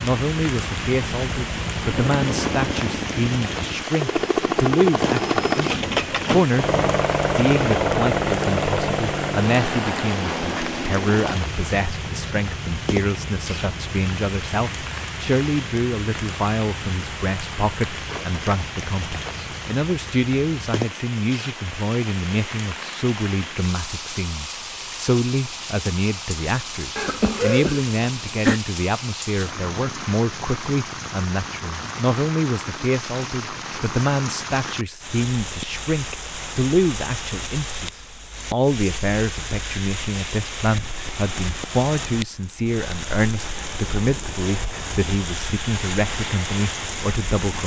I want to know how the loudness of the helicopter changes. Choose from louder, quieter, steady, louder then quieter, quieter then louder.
louder then quieter.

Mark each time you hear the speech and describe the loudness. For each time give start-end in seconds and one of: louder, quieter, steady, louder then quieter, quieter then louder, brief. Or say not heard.
0.0-47.6 steady.